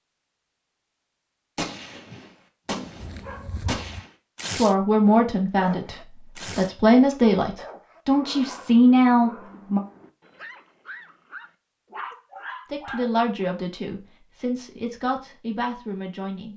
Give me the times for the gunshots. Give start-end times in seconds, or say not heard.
1.6-4.1.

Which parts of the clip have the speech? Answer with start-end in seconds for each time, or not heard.
4.5-9.8, 12.7-16.5.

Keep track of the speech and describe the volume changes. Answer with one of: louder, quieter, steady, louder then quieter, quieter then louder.
quieter.